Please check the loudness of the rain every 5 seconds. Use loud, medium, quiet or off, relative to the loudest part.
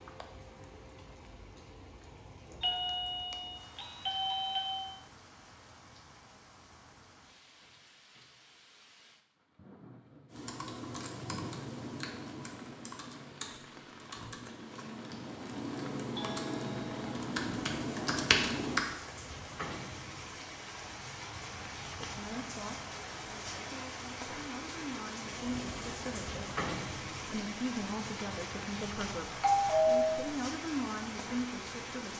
quiet, quiet, quiet, medium, loud, loud, loud.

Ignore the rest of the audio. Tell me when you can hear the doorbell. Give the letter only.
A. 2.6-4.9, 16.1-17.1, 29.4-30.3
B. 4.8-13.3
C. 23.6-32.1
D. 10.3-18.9
A.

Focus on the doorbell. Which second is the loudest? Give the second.
30 s.